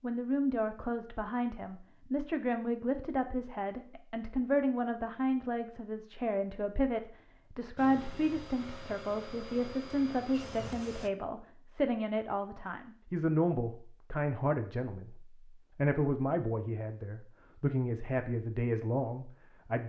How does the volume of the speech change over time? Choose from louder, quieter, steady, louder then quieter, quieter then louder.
steady.